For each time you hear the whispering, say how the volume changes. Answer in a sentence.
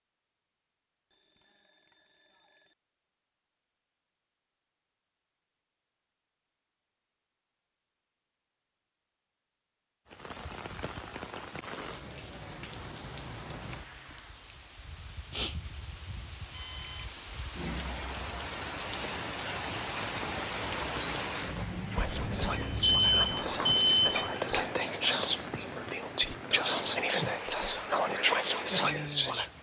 The whispering can be heard from 21.9 to 29.5 s, getting louder.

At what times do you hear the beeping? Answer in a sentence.
The beeping can be heard from 1.1 to 2.8 s, from 16.5 to 17.2 s and from 21.9 to 24.4 s.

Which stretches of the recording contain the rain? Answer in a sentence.
You can hear the rain from 10.1 to 29.5 s.